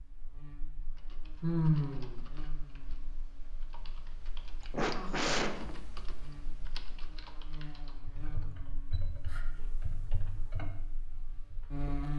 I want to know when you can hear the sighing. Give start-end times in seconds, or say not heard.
1.4-2.2, 4.7-5.8, 8.9-9.4.